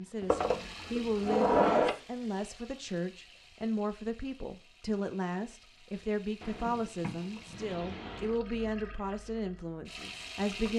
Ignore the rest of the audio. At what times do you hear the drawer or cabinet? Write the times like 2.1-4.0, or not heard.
0.2-1.9, 6.4-8.3.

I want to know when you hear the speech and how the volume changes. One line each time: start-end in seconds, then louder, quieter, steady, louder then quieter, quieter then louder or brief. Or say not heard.
0.0-10.7 steady.